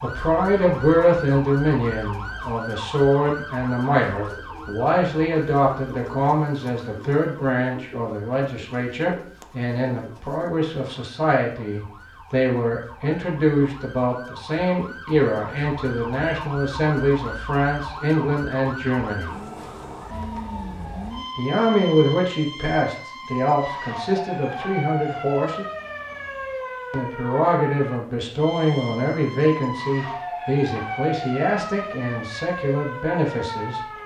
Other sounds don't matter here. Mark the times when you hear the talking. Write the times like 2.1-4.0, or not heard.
0.0-19.4, 21.4-25.6, 26.9-33.8.